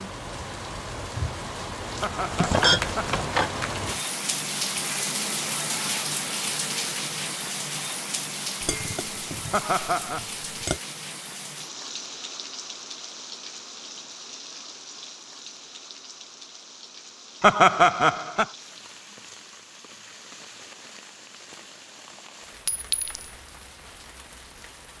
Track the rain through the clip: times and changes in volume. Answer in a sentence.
You can hear the rain from 0.0 to 24.9 s, getting quieter.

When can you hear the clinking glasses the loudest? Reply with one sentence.
The volume of the clinking glasses peaks at 3 seconds.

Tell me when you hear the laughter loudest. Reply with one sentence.
The loudest moment of the laughter is at 18 seconds.